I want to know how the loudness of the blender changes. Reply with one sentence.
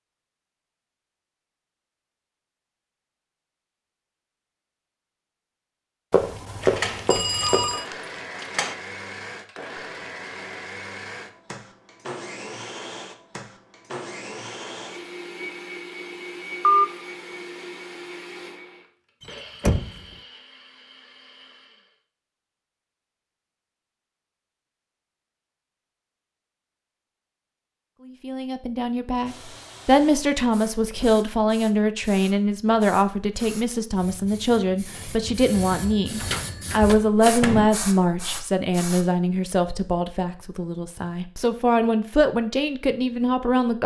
The volume of the blender goes down.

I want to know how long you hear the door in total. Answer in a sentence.
You can hear the door for 5 seconds altogether.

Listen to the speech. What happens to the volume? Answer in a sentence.
The loudness of the speech stays about the same.